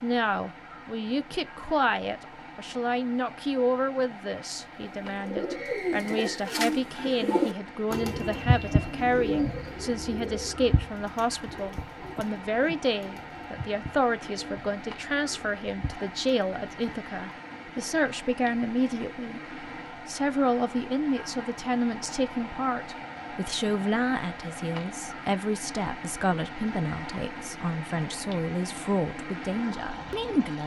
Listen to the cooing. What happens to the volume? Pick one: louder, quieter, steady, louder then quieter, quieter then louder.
quieter.